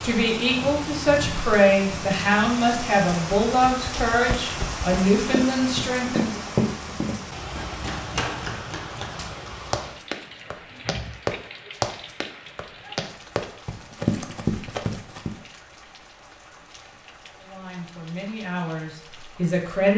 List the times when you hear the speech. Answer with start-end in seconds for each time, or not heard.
0.0-6.4, 17.4-19.9.